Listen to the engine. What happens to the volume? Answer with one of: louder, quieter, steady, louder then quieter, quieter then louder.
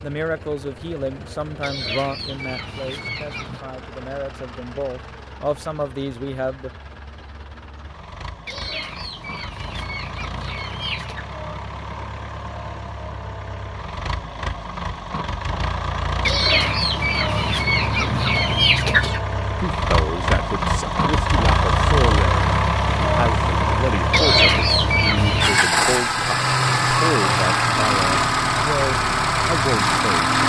louder.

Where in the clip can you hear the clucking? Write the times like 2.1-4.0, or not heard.
1.6-3.6, 8.4-11.2, 16.2-19.2, 24.1-25.6.